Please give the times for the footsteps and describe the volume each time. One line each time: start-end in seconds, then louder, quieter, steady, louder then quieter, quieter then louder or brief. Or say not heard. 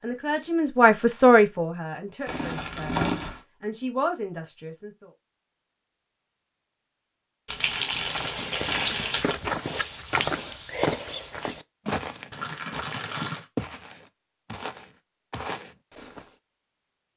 8.0-16.4 quieter.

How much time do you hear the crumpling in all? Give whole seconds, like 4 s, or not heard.
4 s.